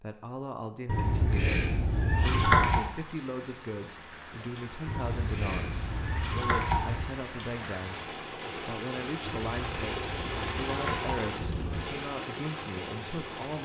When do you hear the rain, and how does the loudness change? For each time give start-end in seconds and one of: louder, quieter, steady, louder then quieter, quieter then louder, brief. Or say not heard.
2.8-13.6 louder.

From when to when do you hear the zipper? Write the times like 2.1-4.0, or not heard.
not heard.